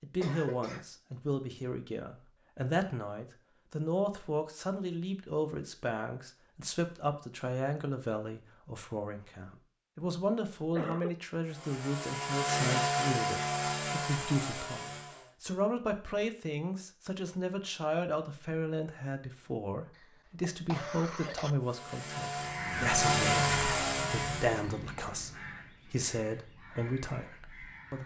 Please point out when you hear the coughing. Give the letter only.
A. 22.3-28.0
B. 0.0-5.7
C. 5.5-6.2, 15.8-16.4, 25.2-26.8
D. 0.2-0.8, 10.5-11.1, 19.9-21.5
D.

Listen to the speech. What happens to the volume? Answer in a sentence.
The loudness of the speech stays about the same.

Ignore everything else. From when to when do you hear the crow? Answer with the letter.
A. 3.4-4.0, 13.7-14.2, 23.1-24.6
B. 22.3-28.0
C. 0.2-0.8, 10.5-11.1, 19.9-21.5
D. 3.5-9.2
B.